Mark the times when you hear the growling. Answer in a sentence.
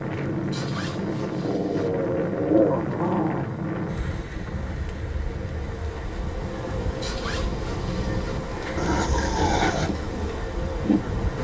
The growling can be heard from 1.4 to 3.5 s and from 8.8 to 9.9 s.